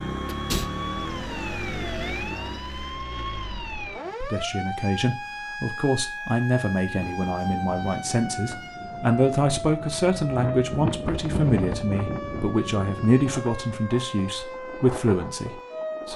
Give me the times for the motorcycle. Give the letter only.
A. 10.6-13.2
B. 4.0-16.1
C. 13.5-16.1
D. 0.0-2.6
D.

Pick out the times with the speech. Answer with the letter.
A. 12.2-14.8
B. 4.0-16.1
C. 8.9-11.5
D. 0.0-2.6
B.